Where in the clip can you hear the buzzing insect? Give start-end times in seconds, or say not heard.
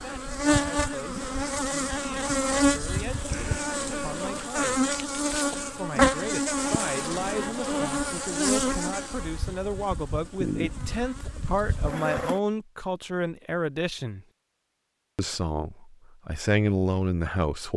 0.0-12.4.